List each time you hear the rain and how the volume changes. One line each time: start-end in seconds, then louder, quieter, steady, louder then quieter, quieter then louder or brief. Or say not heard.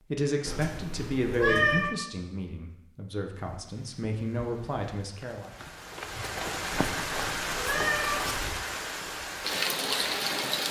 3.3-10.6 louder.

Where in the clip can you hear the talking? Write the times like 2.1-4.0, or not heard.
0.1-5.5.